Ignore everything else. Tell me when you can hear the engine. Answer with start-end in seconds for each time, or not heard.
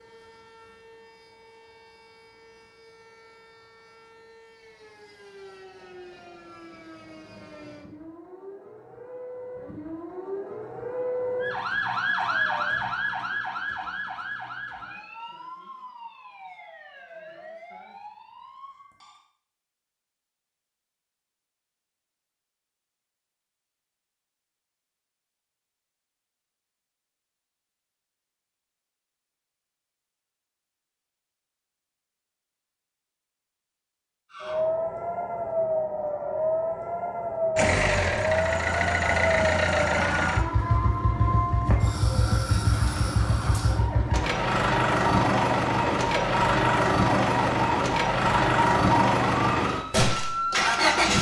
37.5-51.1.